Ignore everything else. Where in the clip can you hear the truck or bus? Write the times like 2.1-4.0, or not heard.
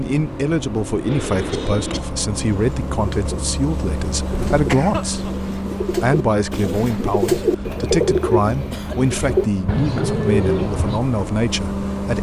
0.0-12.1.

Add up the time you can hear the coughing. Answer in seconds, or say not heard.
3 s.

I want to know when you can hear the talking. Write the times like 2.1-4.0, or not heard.
0.0-5.3, 6.0-12.1.